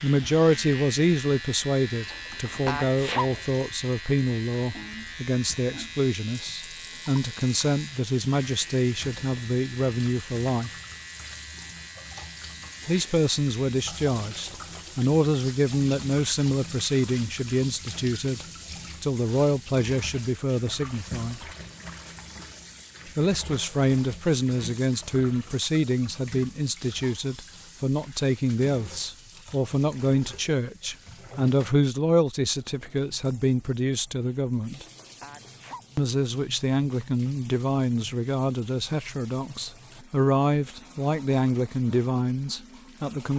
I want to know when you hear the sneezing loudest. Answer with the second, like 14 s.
3 s.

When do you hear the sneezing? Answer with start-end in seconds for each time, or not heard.
2.6-3.3, 35.2-35.9.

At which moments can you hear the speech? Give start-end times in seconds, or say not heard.
0.0-10.7, 12.8-21.5, 23.1-34.9, 36.0-43.3.